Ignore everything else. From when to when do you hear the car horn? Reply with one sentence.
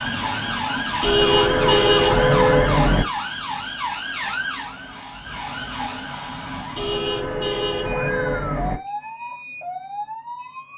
You can hear the car horn from 1.0 to 3.0 s and from 6.8 to 8.8 s.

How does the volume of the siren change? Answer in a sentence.
The volume of the siren goes down.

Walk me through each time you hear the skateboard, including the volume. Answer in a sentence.
You can't hear the skateboard here.